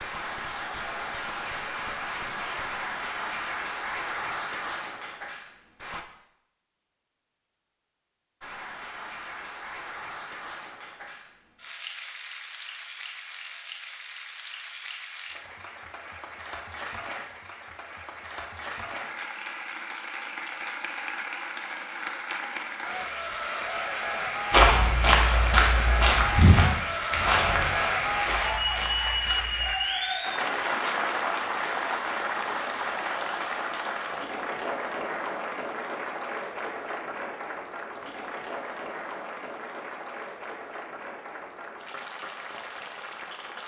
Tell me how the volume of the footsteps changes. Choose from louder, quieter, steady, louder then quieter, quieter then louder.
quieter.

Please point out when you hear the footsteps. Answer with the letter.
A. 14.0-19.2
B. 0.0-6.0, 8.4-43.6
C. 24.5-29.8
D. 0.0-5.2
C.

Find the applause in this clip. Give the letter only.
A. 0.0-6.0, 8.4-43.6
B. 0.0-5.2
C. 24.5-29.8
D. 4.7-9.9
A.